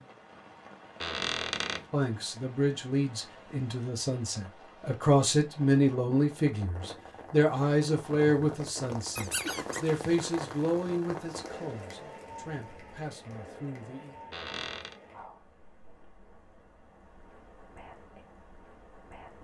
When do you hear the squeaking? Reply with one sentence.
You can hear the squeaking from 1.0 to 1.9 s, from 9.2 to 9.8 s and from 14.3 to 15.0 s.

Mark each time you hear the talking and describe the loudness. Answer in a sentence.
The talking can be heard from 1.9 to 14.2 s, getting louder then quieter.